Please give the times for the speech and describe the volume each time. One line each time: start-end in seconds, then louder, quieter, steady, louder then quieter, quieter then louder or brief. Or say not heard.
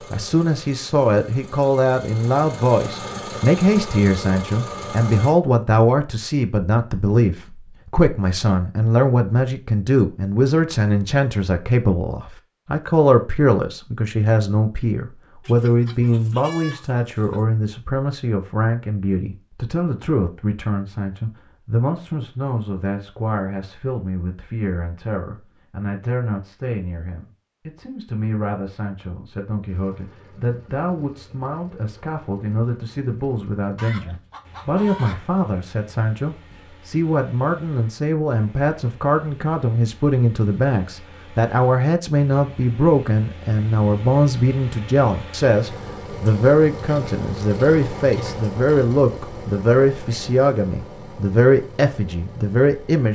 0.1-53.1 quieter then louder.